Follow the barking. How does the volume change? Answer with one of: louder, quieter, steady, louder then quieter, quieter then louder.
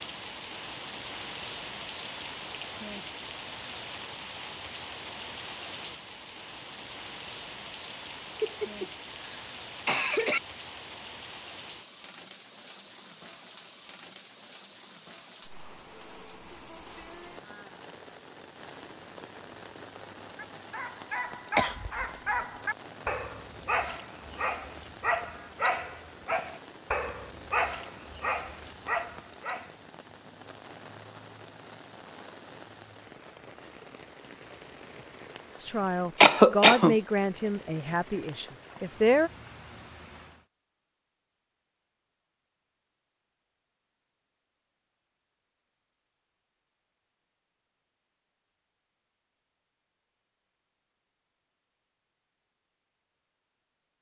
steady.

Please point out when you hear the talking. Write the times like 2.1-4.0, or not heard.
35.5-39.3.